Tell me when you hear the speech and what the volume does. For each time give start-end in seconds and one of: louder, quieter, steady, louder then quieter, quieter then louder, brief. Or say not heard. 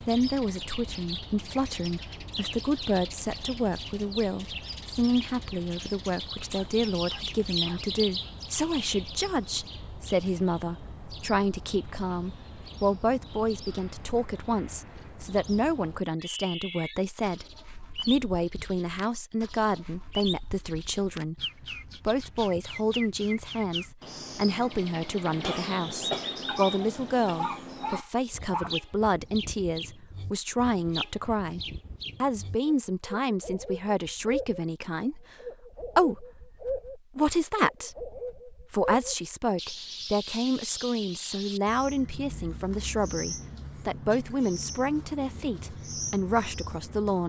0.1-47.2 steady.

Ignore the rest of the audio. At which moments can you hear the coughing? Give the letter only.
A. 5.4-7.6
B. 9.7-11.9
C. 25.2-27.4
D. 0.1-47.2
C.